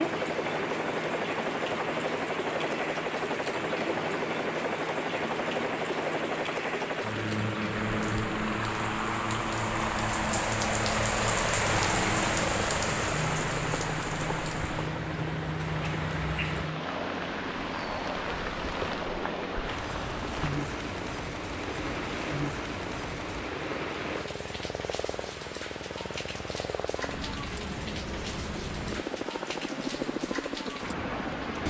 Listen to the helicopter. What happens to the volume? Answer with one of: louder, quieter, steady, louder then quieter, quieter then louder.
quieter.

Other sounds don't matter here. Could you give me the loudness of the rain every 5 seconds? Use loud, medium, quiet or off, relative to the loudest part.
medium, medium, loud, medium, medium, medium, medium.